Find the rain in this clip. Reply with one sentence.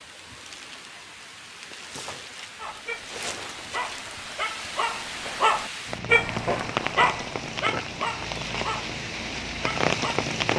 You can hear the rain from 0.0 to 10.5 s.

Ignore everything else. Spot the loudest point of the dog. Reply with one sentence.
The loudest moment of the dog is at 6 seconds.